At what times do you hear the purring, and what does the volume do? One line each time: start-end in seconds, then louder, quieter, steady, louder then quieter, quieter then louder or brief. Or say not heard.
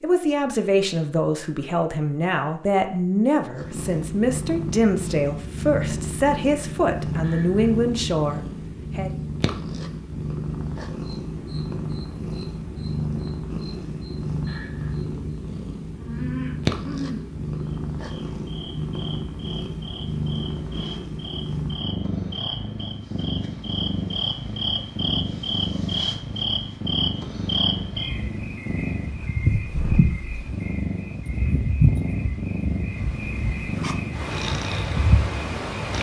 3.5-35.9 steady.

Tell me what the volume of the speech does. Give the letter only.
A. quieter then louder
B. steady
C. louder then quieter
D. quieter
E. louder
B.